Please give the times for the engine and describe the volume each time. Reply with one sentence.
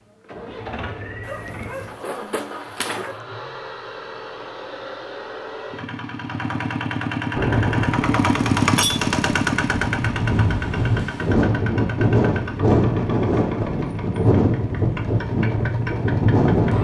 The engine can be heard from 0.0 to 16.7 s, getting louder then quieter.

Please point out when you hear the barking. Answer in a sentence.
The barking can be heard from 1.2 to 3.2 s.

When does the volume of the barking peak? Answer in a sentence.
The volume of the barking peaks at 3 seconds.